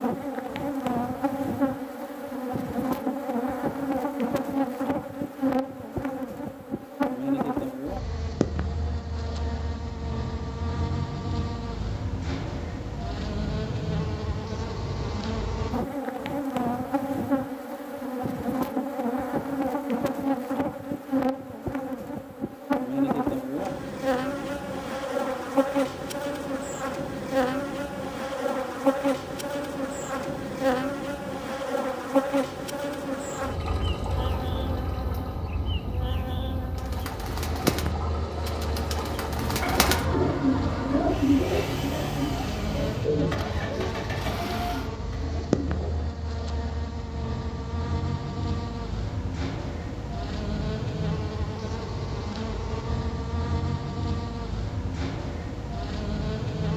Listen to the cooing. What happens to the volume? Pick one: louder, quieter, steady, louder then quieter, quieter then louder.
louder then quieter.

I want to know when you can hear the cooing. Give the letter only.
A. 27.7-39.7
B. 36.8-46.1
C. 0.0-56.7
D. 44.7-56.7
B.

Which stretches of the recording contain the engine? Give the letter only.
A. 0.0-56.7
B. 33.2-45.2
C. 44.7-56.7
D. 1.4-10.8
B.